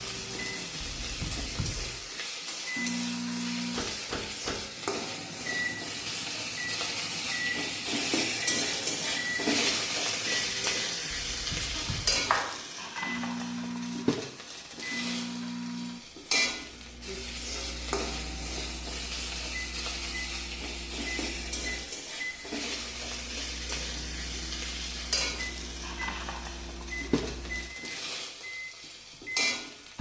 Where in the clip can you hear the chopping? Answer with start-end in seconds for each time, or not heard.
11.7-12.6.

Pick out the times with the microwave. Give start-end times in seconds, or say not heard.
0.0-29.9.